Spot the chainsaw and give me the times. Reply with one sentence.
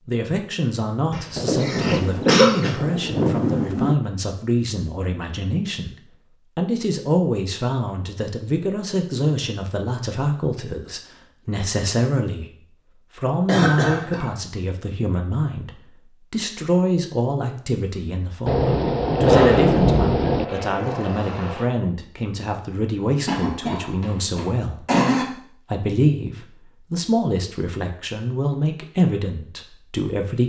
The chainsaw can be heard from 19.1 to 21.6 s.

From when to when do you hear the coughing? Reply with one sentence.
You can hear the coughing from 1.1 to 2.7 s, from 13.4 to 14.2 s and from 23.2 to 25.2 s.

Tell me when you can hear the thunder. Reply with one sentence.
The thunder can be heard from 1.4 to 4.0 s and from 18.4 to 20.4 s.